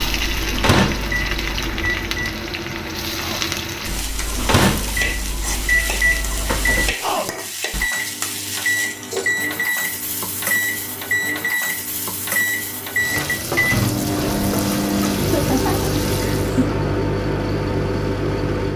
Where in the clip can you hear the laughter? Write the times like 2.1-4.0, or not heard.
15.3-16.6.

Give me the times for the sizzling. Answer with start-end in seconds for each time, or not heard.
0.0-16.7.